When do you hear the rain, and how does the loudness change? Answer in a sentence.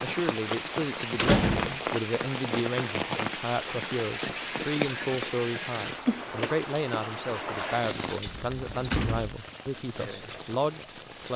You can hear the rain from 0.0 to 11.3 s, getting quieter.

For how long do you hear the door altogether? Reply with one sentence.
You can hear the door for 2 seconds altogether.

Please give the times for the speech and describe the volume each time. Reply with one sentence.
The speech can be heard from 0.0 to 11.3 s, at a steady volume.